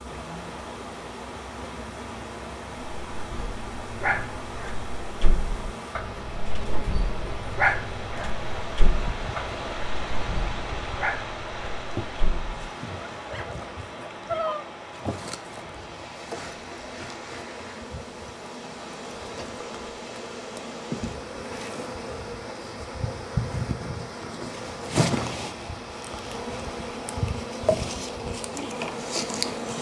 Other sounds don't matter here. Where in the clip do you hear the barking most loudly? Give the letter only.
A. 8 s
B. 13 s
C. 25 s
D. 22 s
A.